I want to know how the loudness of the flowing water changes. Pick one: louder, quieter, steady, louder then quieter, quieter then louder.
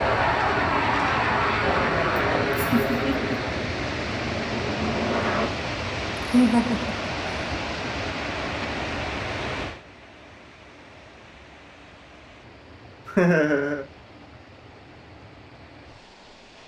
quieter.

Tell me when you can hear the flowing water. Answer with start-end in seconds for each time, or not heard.
0.0-16.6.